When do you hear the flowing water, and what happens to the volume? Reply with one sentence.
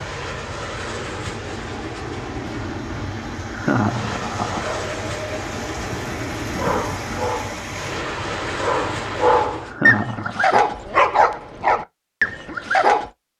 You can hear the flowing water from 0.0 to 9.5 s, getting louder.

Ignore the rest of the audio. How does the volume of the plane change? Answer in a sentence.
The volume of the plane stays about the same.